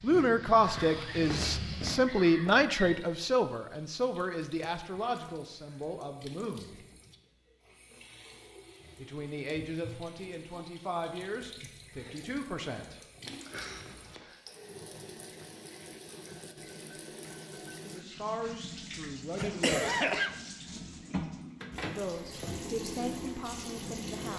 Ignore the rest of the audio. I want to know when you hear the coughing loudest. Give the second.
20 s.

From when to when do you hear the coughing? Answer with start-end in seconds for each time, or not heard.
0.6-3.0, 13.2-14.4, 19.4-20.4.